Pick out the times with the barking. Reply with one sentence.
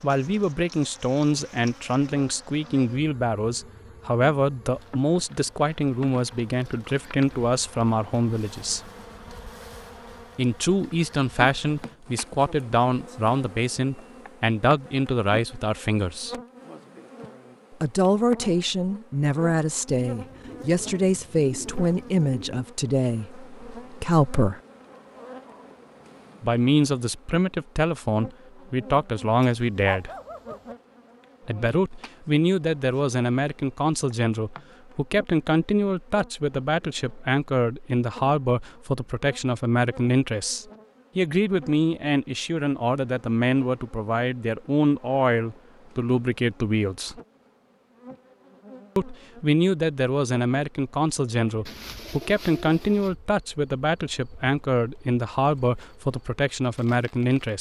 You can hear the barking from 29.5 to 30.8 s.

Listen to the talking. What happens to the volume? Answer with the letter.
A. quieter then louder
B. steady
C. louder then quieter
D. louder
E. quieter
B.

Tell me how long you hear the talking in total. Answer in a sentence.
You can hear the talking for 50 seconds altogether.